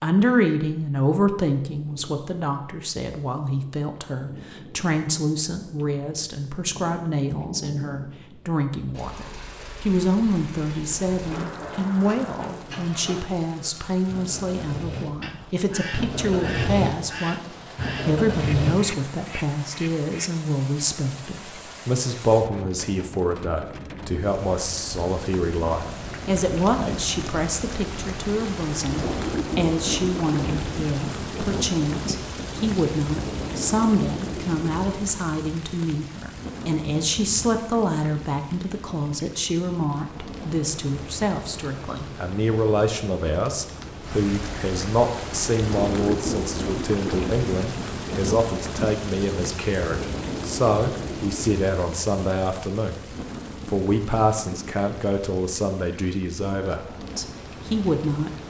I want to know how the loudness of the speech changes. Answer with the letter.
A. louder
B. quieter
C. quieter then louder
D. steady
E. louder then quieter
D.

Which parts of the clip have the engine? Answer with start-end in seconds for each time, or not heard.
8.9-19.0.